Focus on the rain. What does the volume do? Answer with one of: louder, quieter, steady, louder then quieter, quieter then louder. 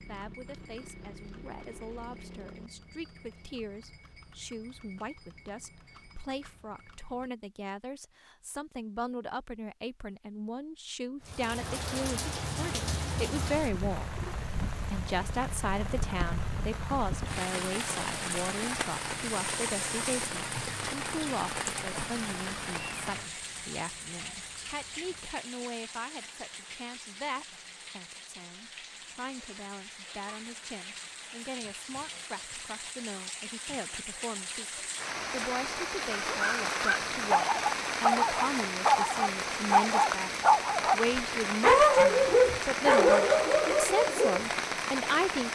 quieter then louder.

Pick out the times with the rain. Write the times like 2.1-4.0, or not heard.
11.2-45.5.